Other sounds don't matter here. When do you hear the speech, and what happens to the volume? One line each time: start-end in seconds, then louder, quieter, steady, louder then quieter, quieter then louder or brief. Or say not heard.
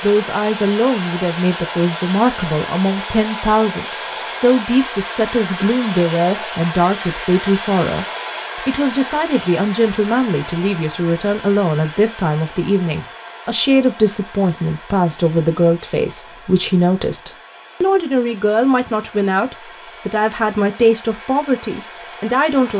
0.0-8.1 steady
8.7-22.7 steady.